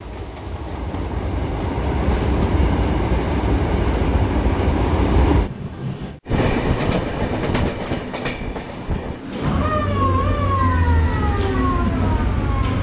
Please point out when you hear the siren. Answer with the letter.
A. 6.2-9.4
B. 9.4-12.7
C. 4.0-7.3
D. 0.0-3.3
B.